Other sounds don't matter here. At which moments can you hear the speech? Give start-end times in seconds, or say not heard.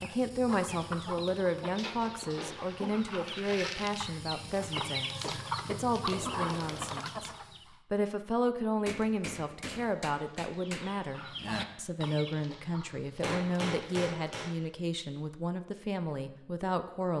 0.0-17.1.